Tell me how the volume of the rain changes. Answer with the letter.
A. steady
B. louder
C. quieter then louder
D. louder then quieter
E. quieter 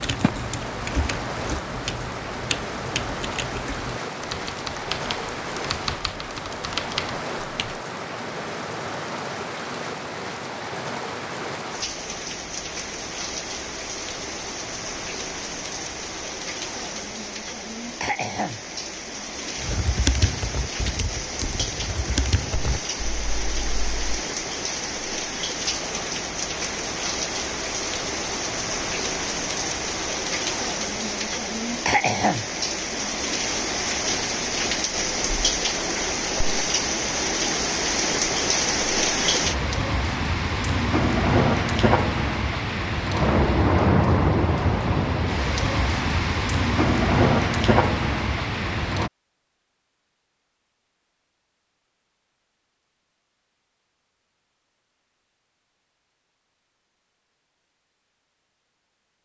B.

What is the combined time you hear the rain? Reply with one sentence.
You can hear the rain for 49 seconds altogether.